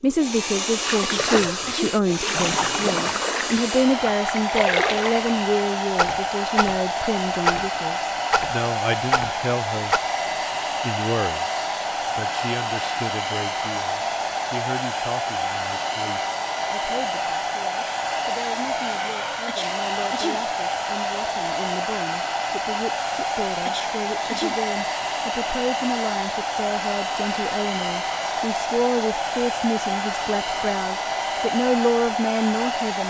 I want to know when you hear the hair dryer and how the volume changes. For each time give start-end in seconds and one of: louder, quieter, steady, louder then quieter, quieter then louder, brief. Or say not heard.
0.1-33.0 steady.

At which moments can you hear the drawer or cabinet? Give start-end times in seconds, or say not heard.
not heard.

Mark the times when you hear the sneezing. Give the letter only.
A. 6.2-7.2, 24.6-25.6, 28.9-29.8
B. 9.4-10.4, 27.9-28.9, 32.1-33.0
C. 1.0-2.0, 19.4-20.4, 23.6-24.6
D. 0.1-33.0
C.